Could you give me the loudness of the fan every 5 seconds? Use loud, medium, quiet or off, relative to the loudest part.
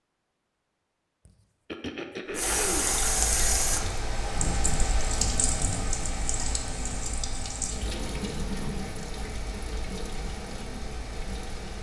loud, loud, medium.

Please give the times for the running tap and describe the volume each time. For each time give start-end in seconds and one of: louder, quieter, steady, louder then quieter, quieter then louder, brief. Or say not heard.
2.4-11.7 quieter.